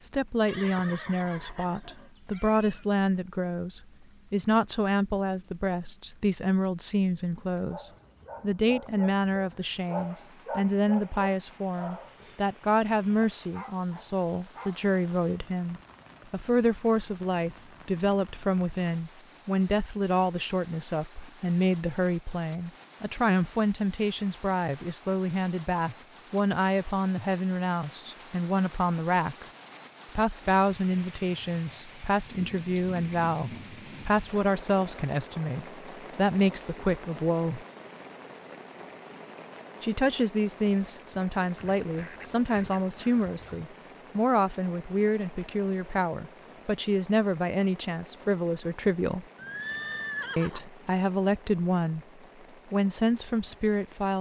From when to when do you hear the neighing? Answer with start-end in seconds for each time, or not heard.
0.5-2.9, 49.4-50.7.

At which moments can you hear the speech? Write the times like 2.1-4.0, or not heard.
0.0-29.4, 30.1-37.6, 39.8-49.2, 50.4-52.0, 52.7-54.1.